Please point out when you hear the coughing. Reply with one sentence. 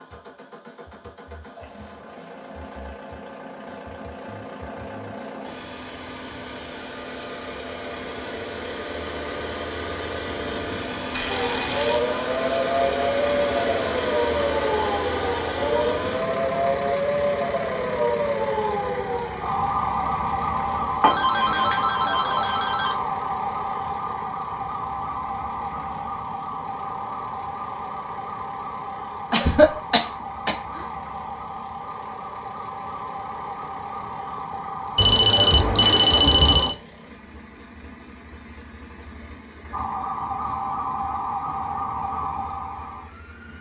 The coughing can be heard from 29.3 to 30.8 s.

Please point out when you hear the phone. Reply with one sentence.
The phone can be heard from 11.1 to 12.1 s, from 21.0 to 23.0 s and from 35.0 to 36.8 s.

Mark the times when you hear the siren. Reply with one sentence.
The siren can be heard from 11.2 to 36.7 s and from 39.7 to 43.5 s.